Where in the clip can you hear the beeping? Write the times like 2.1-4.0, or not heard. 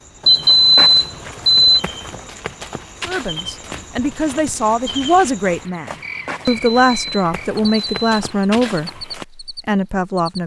0.2-1.8, 6.4-8.1.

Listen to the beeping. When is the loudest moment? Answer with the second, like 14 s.
1 s.